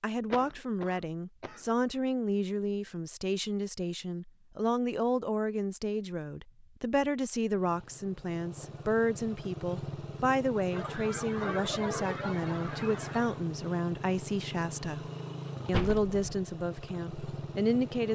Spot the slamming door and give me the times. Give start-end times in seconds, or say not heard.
15.7-16.4.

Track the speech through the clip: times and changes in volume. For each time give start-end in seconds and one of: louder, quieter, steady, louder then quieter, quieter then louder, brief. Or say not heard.
0.0-15.0 steady
15.7-18.0 brief.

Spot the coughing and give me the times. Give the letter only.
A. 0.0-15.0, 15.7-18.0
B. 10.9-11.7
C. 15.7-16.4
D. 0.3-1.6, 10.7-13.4
D.